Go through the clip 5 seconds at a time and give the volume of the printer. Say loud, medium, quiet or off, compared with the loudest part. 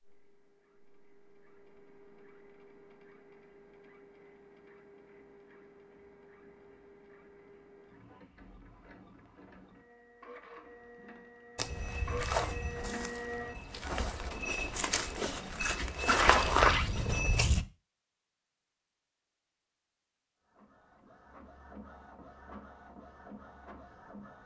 quiet, quiet, loud, off, medium.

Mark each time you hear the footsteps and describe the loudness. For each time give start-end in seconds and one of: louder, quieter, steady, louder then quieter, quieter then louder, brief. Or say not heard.
11.6-17.6 quieter then louder.